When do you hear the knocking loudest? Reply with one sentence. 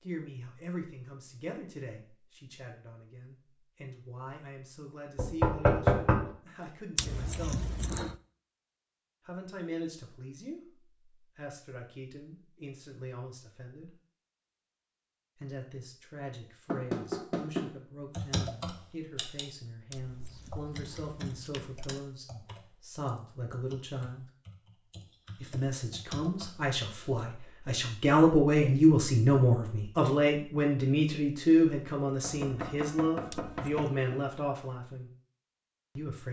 The loudest moment of the knocking is at 6 seconds.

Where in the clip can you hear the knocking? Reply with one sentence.
The knocking can be heard from 5.2 to 6.3 s, from 16.6 to 17.7 s and from 32.2 to 34.2 s.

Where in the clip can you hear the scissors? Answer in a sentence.
You can hear the scissors from 7.0 to 8.2 s, from 19.9 to 21.9 s and from 33.3 to 33.9 s.